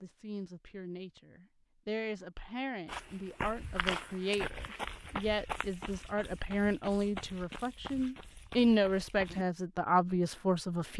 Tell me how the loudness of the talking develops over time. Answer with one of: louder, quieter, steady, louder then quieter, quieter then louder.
louder.